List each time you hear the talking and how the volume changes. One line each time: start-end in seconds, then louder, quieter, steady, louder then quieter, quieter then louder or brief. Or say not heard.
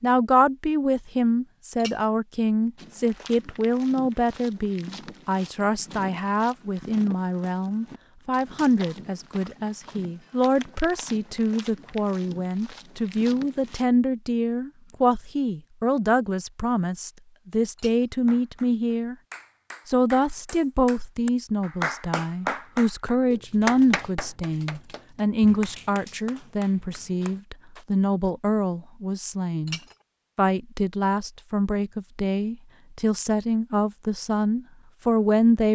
0.0-19.1 steady
19.9-35.6 steady.